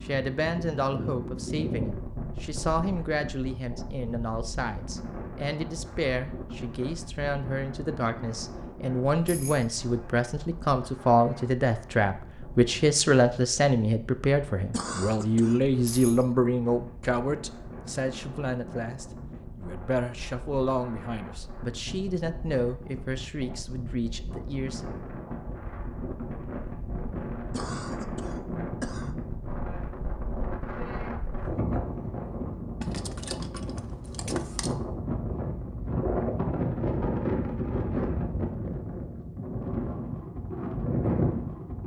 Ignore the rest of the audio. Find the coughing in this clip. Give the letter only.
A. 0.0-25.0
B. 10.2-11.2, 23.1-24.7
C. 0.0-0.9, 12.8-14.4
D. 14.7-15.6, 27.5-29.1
D.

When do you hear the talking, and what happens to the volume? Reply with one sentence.
The talking can be heard from 0.0 to 25.0 s, getting louder then quieter.